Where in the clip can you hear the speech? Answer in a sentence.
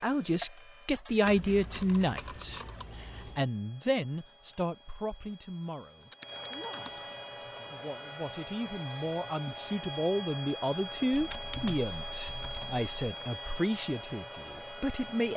You can hear the speech from 0.0 to 15.3 s.